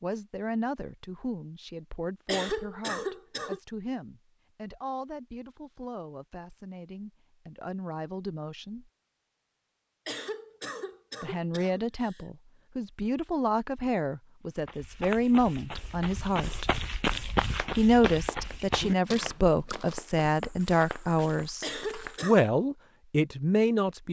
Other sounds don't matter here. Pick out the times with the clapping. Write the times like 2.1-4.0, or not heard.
17.1-22.1.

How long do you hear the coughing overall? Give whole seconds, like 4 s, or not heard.
4 s.